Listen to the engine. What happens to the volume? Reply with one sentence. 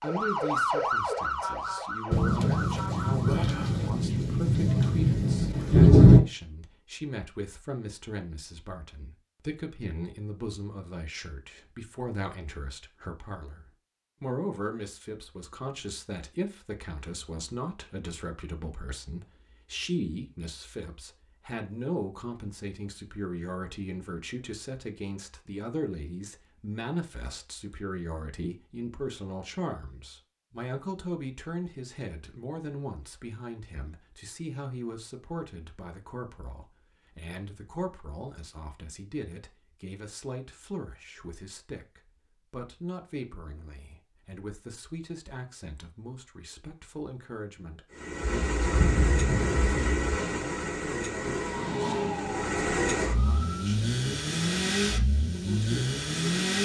The loudness of the engine stays about the same.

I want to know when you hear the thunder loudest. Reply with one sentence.
The volume of the thunder peaks at 6 seconds.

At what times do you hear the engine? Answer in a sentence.
You can hear the engine from 47.9 to 56.5 s.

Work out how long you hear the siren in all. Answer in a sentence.
The siren can be heard for 6 seconds in total.